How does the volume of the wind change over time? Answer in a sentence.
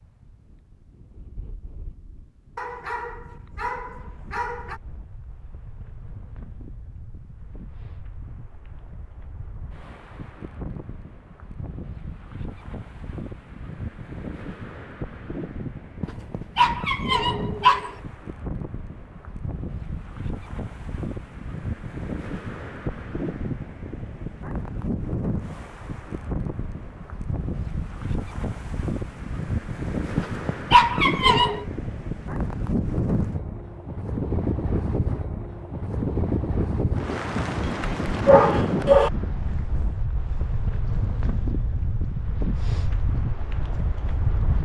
The loudness of the wind goes up.